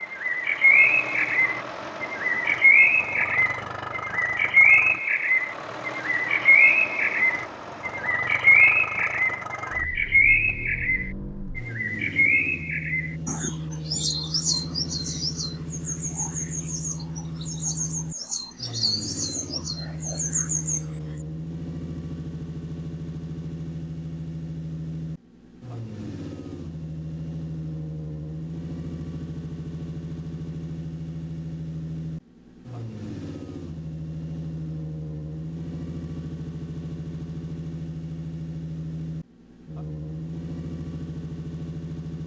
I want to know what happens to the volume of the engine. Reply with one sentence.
The volume of the engine stays about the same.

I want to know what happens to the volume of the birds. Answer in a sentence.
The loudness of the birds goes down.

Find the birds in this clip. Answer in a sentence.
The birds can be heard from 0.0 to 21.0 s.